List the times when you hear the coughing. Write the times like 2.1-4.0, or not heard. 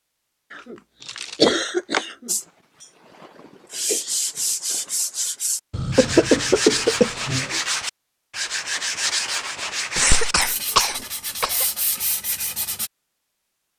0.5-2.4, 5.7-7.6, 9.9-11.7.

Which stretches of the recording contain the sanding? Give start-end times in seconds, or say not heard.
2.2-12.9.